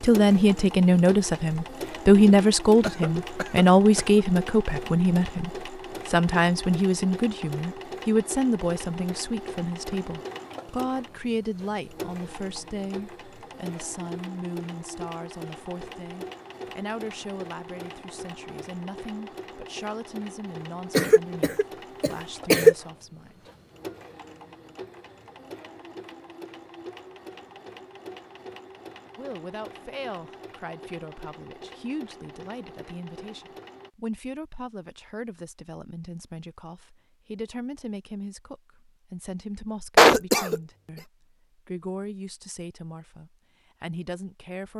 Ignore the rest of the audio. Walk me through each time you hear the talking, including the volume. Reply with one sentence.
The talking can be heard from 0.0 to 23.5 s, getting quieter; and from 29.1 to 44.7 s, at a steady volume.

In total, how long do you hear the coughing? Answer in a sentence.
The coughing can be heard for 4 seconds in total.